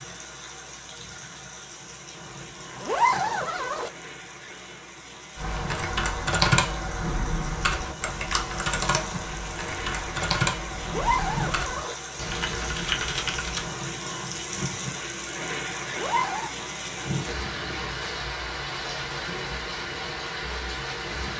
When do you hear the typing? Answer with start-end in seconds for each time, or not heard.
5.3-13.7.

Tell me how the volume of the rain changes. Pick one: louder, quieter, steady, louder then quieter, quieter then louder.
louder.